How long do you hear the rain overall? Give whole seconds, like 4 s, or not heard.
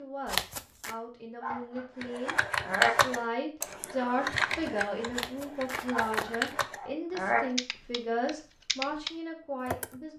not heard.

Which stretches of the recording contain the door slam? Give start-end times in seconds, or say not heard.
not heard.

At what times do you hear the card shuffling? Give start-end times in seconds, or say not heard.
0.2-0.9, 5.1-6.5.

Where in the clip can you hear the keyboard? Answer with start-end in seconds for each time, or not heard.
2.0-10.0.